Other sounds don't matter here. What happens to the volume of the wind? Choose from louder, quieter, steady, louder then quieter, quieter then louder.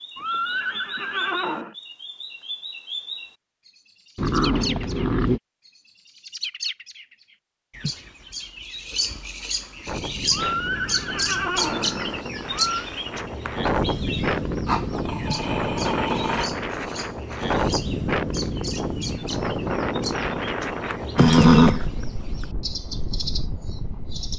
louder then quieter.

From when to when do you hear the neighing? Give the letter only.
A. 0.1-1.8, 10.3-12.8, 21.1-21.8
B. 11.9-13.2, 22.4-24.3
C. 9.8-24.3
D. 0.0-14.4
A.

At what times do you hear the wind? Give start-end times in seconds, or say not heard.
9.8-24.3.